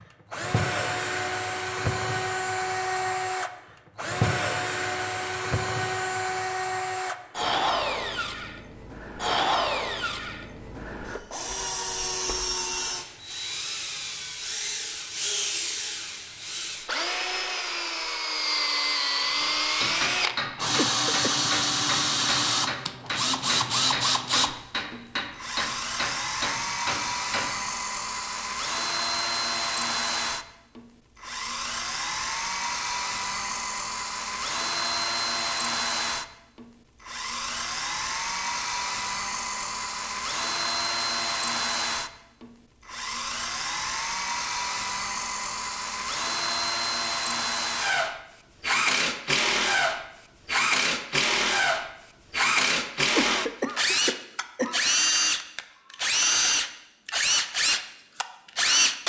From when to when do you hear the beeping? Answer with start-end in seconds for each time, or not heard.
not heard.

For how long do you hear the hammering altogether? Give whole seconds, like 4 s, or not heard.
8 s.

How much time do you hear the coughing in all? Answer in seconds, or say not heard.
2 s.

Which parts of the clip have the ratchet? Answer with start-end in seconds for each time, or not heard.
not heard.